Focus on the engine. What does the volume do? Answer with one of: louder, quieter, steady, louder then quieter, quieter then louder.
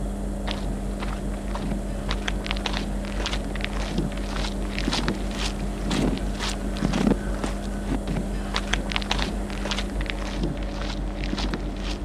steady.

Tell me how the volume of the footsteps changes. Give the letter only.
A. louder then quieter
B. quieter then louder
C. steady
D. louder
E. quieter
A.